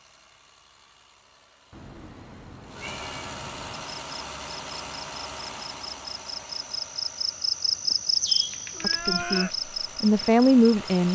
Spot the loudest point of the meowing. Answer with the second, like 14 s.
9 s.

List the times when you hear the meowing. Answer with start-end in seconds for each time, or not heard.
1.7-4.0, 8.5-9.6.